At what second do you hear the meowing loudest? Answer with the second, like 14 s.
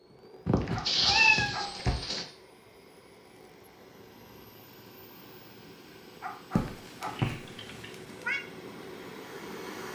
1 s.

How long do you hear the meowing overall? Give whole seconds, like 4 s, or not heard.
4 s.